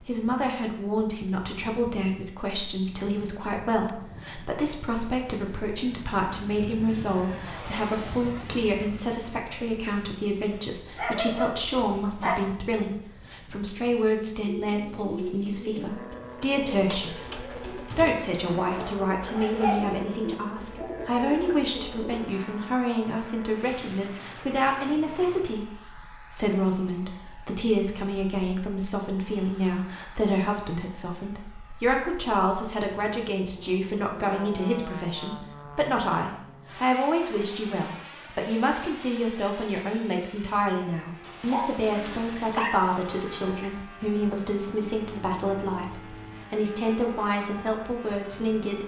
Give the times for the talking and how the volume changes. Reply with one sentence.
You can hear the talking from 0.0 to 48.8 s, at a steady volume.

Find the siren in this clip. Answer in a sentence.
The siren can't be heard in this clip.